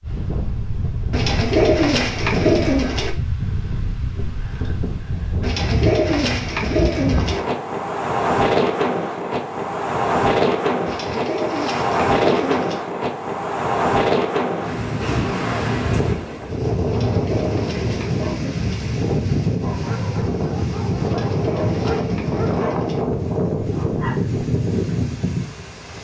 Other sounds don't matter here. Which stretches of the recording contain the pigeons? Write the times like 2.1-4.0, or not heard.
1.1-3.1, 5.4-7.4, 10.8-12.8, 16.9-18.9, 21.0-23.1.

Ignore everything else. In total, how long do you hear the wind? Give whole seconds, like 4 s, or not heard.
26 s.